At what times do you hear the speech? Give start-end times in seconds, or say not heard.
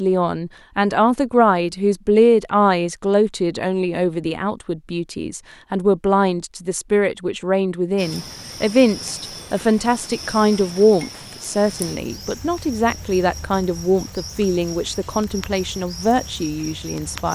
0.0-17.3.